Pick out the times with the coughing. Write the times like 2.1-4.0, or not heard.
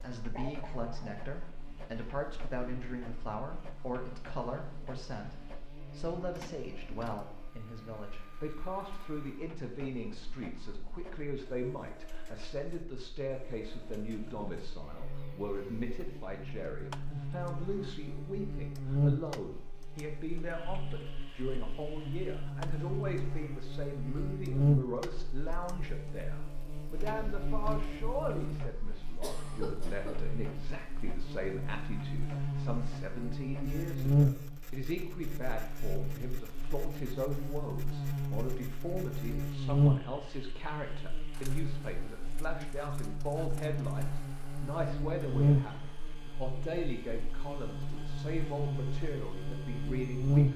0.3-1.3, 29.2-30.3.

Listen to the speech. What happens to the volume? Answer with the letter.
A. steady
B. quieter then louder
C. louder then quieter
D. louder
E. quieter
A.